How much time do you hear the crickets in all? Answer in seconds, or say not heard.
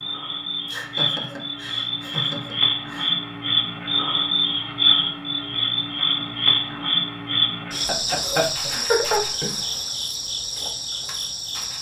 12 s.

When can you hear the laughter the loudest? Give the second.
9 s.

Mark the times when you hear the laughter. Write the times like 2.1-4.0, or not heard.
0.7-3.1, 7.8-9.6.